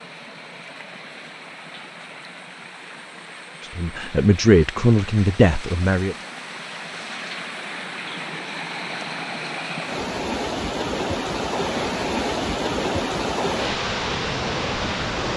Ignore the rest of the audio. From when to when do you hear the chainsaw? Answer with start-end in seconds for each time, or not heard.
not heard.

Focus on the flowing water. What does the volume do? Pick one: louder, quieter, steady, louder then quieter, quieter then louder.
louder.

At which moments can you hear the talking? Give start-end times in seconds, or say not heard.
3.8-6.2.